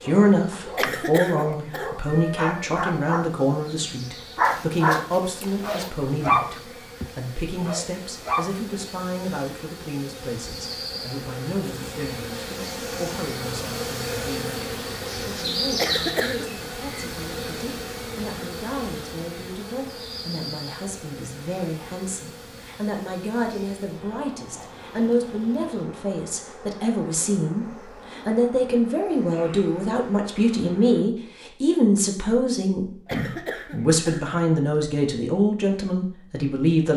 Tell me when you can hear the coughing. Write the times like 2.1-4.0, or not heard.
0.8-1.9, 15.8-16.5, 33.0-34.9.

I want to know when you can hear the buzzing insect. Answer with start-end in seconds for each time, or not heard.
0.0-31.0.